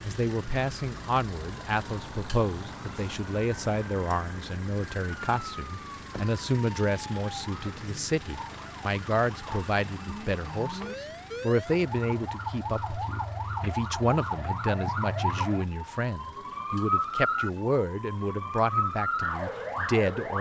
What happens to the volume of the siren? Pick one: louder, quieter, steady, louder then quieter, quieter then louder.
louder.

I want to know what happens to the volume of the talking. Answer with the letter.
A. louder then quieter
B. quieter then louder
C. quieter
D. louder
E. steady
E.